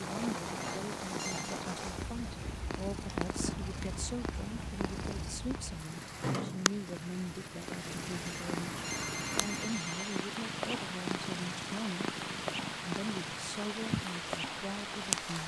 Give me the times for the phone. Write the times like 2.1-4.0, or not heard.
0.6-1.6, 8.2-10.2.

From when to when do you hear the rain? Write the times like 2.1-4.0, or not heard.
0.0-15.4.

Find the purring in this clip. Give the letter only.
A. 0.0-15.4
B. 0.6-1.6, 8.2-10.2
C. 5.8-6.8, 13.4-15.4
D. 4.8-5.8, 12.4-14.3
A.